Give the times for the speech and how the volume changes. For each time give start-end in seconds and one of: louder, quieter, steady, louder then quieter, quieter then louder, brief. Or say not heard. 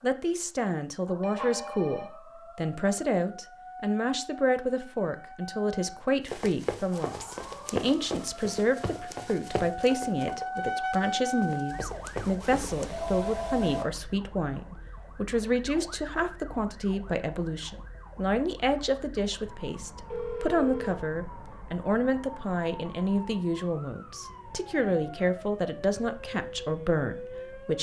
0.0-27.7 steady.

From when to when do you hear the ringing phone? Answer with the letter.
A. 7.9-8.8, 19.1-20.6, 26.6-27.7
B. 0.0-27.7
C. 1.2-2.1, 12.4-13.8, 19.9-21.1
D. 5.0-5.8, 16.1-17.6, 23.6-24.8
C.